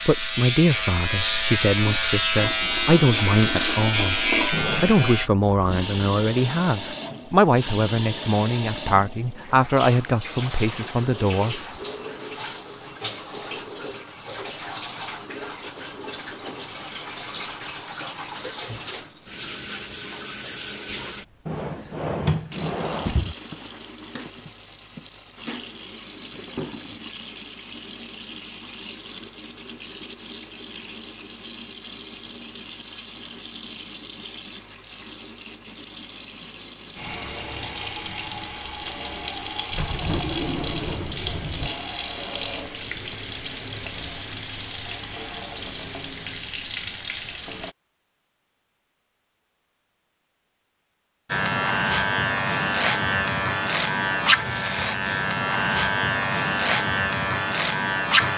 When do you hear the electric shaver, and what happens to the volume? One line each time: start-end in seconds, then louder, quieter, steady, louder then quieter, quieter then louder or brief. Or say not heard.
0.0-5.3 steady
51.3-58.3 steady.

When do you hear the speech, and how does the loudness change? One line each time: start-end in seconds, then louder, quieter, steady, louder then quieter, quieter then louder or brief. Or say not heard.
0.1-11.6 steady.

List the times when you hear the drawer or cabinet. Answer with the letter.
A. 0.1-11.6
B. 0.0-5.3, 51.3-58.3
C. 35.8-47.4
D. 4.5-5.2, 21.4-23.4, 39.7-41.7
D.